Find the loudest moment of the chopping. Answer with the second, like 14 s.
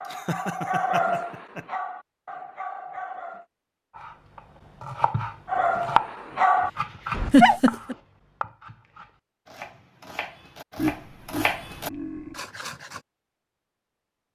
6 s.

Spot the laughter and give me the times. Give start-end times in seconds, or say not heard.
0.1-1.6, 7.3-8.0, 10.8-12.4.